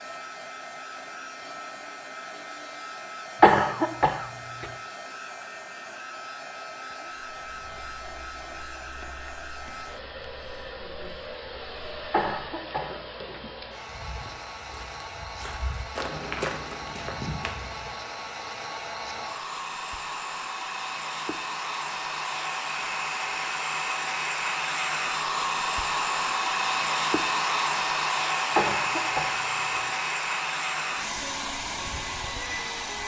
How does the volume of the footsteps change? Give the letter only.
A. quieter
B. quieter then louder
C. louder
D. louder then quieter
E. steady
C.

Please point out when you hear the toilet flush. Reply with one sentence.
The toilet flush can't be heard in this clip.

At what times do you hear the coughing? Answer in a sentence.
The coughing can be heard from 3.4 to 4.7 s, from 12.1 to 13.4 s and from 28.6 to 29.8 s.